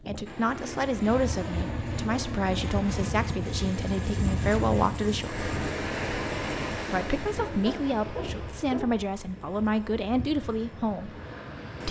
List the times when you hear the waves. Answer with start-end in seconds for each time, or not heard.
5.2-11.8.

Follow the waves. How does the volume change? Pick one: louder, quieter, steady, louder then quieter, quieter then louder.
quieter.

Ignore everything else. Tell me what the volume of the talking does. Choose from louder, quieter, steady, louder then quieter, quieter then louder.
steady.